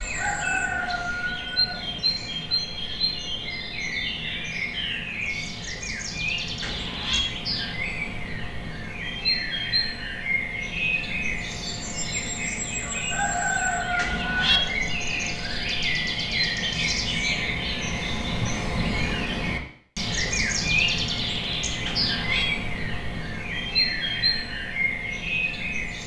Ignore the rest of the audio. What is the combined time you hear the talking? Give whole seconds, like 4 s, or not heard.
not heard.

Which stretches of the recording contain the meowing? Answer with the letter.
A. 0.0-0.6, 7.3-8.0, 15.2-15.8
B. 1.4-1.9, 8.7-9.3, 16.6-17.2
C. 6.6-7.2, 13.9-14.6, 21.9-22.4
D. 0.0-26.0
C.